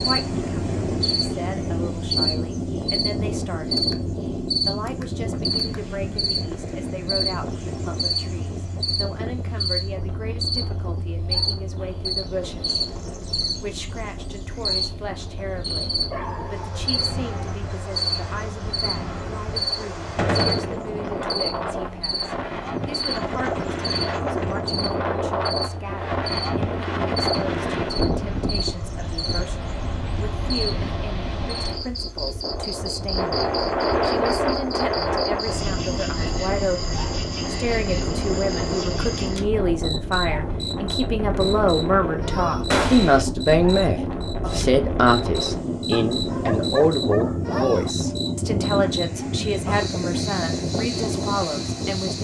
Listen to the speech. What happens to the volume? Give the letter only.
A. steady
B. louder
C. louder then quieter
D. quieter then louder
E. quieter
B.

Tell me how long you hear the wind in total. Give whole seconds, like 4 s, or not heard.
52 s.